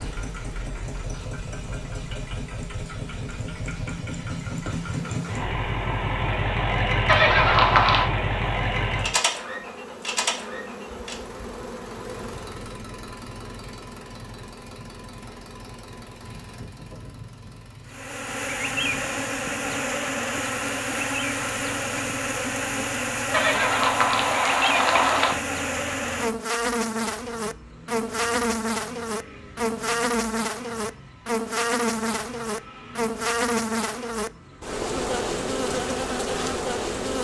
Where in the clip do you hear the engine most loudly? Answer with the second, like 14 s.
7 s.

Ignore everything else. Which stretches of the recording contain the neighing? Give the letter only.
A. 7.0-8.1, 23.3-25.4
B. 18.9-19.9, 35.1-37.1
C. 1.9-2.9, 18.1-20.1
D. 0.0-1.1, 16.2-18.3
A.